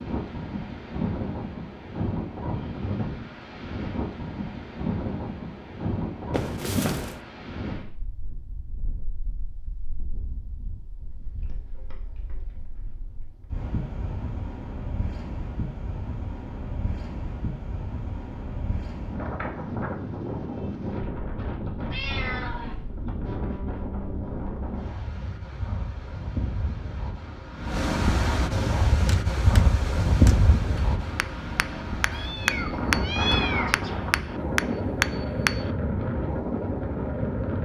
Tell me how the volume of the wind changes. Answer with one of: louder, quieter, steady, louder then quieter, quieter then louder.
quieter then louder.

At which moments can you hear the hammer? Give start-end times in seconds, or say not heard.
29.1-35.7.